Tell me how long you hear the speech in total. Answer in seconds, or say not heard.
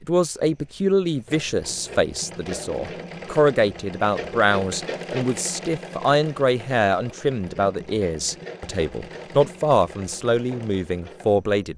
12 s.